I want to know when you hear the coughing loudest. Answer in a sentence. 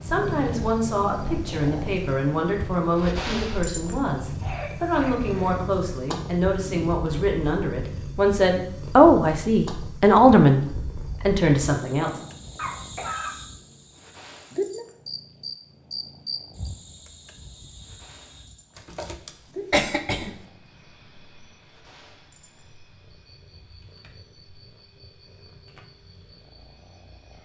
The volume of the coughing peaks at 20 seconds.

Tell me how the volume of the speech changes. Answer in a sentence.
The volume of the speech goes up.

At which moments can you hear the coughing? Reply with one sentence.
The coughing can be heard from 4.4 to 5.6 s, from 12.6 to 13.4 s and from 18.8 to 20.4 s.